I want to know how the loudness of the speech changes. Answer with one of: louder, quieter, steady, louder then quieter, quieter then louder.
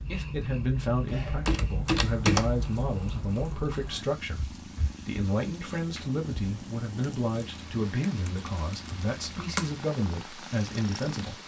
steady.